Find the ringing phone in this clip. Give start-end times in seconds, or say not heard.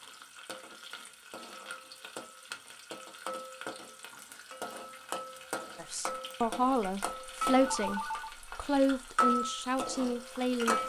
7.7-8.3.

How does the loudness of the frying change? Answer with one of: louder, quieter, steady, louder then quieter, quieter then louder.
louder.